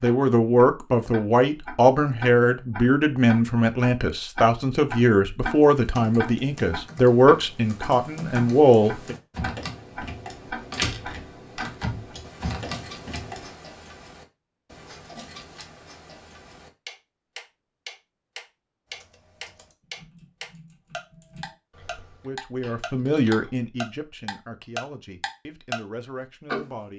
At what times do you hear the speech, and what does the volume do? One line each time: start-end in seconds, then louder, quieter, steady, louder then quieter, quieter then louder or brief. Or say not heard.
0.0-9.2 steady
22.2-26.9 quieter then louder.